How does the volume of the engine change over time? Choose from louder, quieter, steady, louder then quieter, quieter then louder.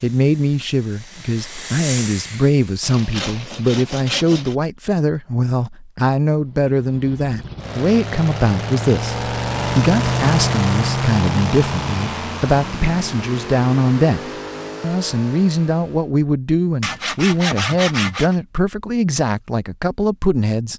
louder then quieter.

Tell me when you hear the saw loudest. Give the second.
18 s.